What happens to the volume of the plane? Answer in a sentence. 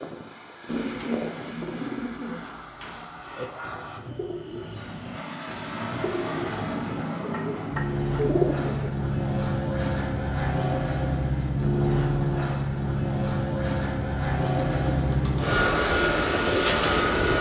The volume of the plane goes up.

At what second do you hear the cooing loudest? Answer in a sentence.
The loudest moment of the cooing is at 8 seconds.